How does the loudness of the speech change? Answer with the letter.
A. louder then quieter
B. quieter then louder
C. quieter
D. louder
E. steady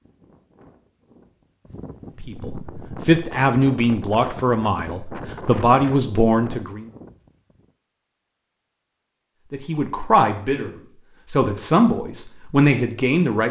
E.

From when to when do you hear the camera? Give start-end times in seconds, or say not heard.
not heard.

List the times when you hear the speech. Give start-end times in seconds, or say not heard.
2.2-6.8, 9.5-13.4.